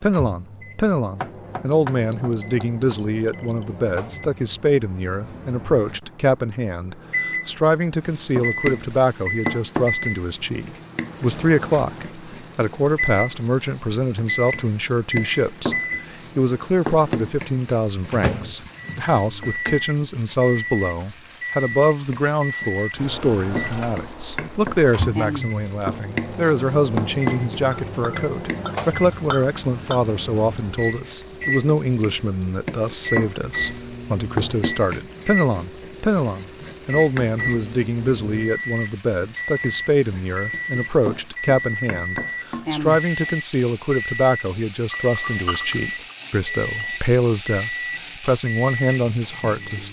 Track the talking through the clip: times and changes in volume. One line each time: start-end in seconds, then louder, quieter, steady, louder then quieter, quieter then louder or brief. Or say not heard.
0.0-49.8 steady.